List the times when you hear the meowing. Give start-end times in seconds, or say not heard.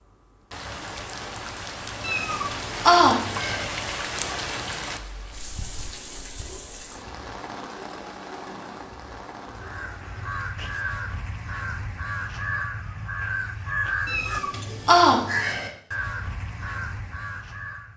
2.0-3.6, 14.1-15.7.